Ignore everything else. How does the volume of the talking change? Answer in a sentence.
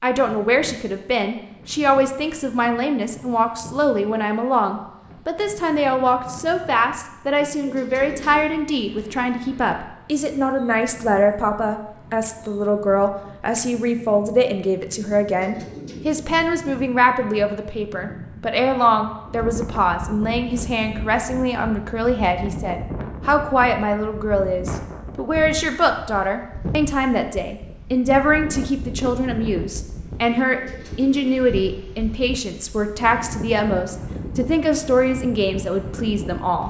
The volume of the talking stays about the same.